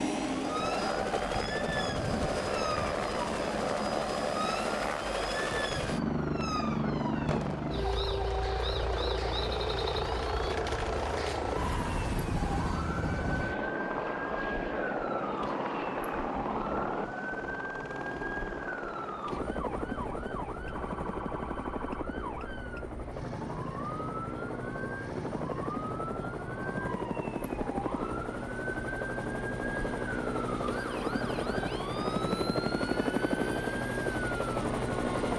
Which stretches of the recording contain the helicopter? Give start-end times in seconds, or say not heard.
0.0-35.3.